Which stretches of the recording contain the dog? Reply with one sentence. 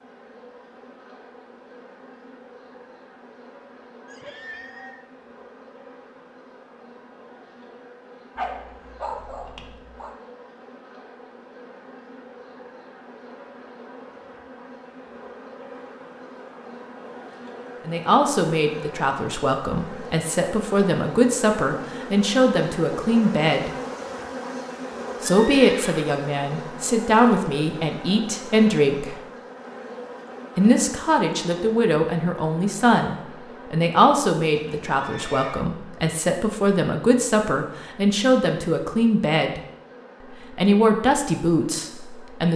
You can hear the dog from 8.3 to 10.2 s.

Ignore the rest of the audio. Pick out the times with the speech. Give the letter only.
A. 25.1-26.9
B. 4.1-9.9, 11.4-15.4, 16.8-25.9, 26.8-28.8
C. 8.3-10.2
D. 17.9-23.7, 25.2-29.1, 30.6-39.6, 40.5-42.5
D.